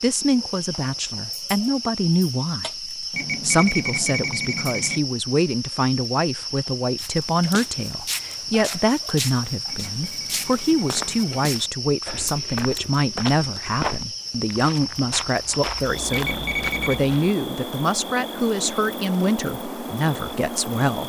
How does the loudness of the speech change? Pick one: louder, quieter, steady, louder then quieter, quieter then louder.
steady.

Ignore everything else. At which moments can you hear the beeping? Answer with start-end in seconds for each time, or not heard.
3.1-5.0, 9.7-11.3, 16.1-17.0.